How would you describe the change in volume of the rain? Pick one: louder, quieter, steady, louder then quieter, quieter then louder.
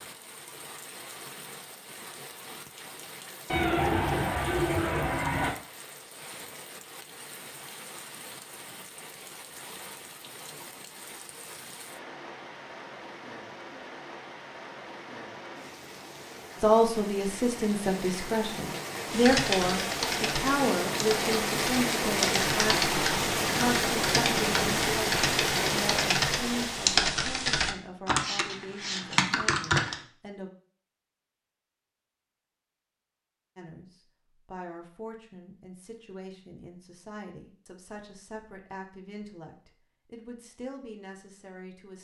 louder.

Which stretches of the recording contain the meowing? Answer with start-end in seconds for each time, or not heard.
3.5-5.5.